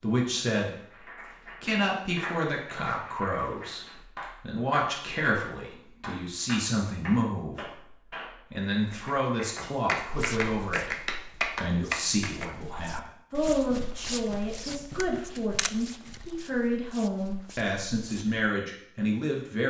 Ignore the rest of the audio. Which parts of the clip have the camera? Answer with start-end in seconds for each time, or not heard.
14.2-16.3.